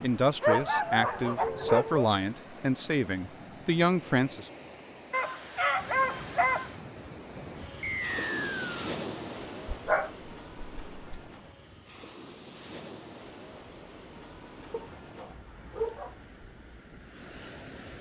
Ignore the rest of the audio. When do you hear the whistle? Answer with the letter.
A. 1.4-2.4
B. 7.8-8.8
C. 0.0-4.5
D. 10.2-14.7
B.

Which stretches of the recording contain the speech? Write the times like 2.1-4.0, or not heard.
0.0-4.5.